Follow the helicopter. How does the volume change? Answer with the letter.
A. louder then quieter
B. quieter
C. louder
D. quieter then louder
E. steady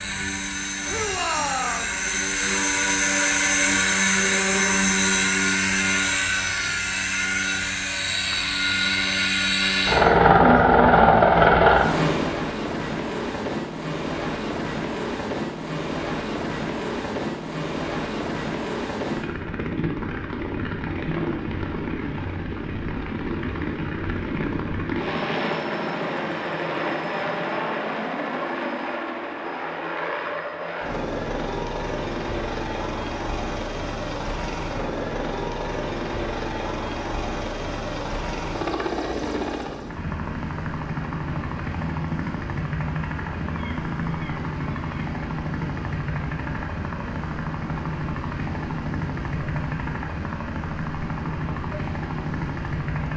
B.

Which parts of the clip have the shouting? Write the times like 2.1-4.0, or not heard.
0.8-1.9.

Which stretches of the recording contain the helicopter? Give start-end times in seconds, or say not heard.
0.0-53.1.